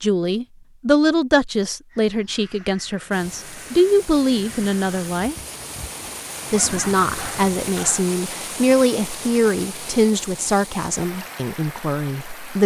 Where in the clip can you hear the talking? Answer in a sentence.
You can hear the talking from 0.0 to 5.3 s and from 6.5 to 12.6 s.